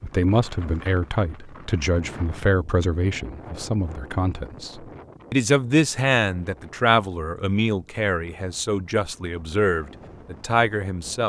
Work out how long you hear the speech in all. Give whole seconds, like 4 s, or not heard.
11 s.